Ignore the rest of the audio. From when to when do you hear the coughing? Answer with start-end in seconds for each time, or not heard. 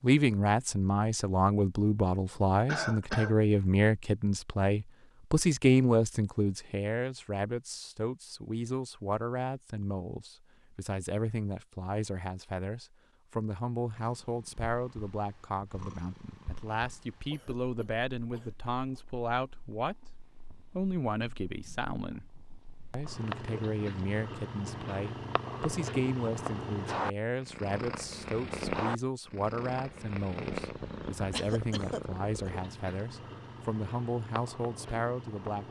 2.6-3.4, 17.3-19.0, 31.3-32.5.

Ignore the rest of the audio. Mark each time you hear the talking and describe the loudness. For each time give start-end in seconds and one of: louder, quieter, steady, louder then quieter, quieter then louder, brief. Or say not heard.
0.0-19.9 quieter
20.7-22.2 brief
22.9-35.6 steady.